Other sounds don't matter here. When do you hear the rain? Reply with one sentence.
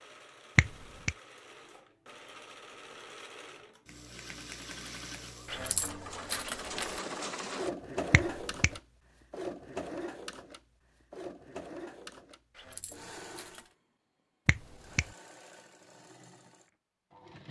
The rain can't be heard in this clip.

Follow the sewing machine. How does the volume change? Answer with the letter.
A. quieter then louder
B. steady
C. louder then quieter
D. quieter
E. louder
C.